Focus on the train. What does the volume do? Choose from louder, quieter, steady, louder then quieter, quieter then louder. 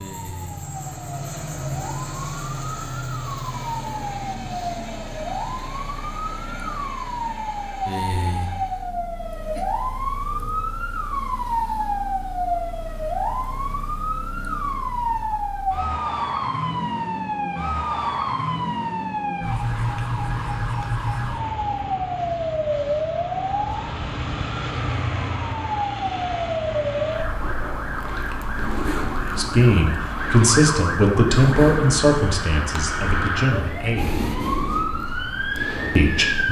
quieter.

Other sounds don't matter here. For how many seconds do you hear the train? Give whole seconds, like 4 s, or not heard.
9 s.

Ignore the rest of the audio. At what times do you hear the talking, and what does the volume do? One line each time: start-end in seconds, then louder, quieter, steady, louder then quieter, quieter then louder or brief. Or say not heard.
29.4-34.2 quieter
36.0-36.4 brief.